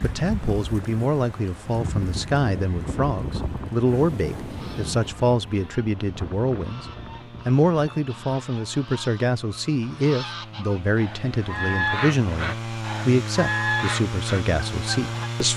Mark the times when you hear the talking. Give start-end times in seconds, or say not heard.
0.0-6.8, 7.5-15.5.